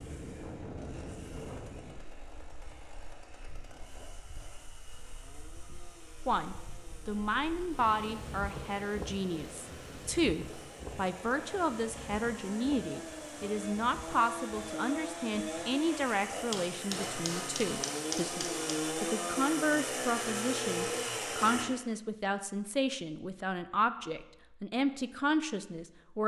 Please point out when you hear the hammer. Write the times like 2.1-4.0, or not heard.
16.5-18.9.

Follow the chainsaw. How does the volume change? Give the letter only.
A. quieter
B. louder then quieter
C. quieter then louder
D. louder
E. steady
D.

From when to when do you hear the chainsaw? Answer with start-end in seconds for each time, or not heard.
0.0-21.6.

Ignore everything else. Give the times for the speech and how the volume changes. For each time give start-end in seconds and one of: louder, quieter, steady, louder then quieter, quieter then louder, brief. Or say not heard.
6.2-26.2 steady.